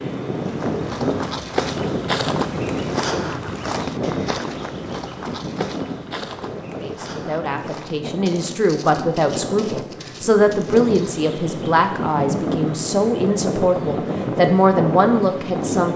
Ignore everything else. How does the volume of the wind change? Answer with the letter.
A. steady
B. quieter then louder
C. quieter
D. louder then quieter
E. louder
B.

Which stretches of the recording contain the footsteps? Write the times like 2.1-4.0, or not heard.
0.4-11.2.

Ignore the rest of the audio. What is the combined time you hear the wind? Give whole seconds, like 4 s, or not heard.
16 s.